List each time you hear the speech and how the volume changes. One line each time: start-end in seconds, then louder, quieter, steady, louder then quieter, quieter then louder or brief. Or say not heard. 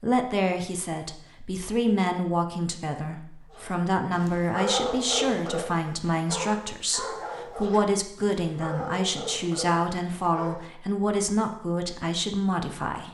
0.0-13.0 steady.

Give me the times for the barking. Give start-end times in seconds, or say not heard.
3.5-10.7.